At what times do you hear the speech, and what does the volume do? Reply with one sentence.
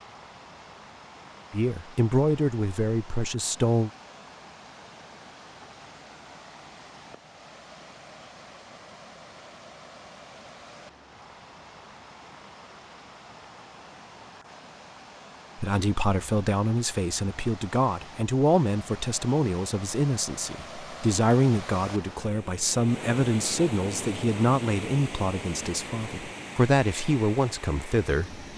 The speech can be heard briefly from 1.5 to 3.9 s; and from 15.6 to 28.4 s, at a steady volume.